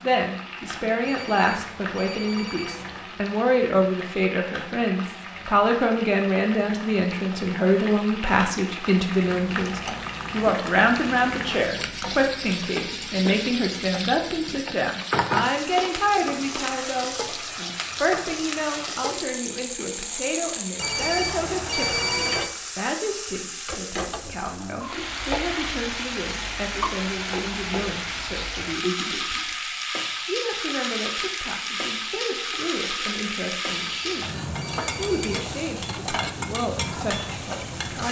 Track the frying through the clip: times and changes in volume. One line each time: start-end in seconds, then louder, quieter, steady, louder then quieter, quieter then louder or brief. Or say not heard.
0.0-38.0 louder.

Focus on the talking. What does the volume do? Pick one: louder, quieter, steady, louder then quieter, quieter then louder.
quieter.